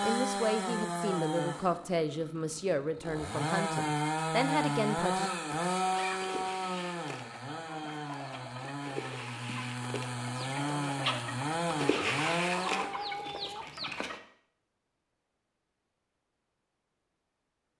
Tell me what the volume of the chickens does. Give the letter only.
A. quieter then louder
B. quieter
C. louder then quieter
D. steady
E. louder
E.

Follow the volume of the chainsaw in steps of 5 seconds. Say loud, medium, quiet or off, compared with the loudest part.
loud, loud, loud, off.